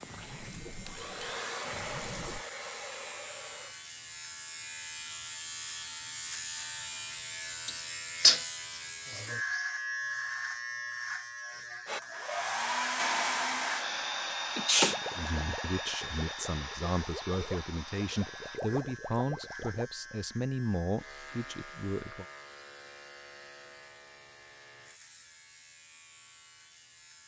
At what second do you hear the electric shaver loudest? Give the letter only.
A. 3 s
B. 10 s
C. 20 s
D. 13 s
B.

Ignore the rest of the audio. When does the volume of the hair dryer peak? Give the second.
13 s.